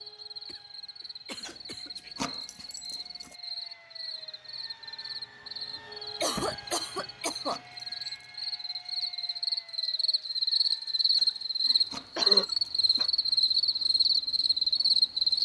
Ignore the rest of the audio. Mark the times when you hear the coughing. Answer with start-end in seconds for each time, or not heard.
0.5-1.9, 5.8-7.6, 11.2-13.1.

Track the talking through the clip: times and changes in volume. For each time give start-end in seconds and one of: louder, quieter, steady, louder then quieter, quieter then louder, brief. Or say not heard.
not heard.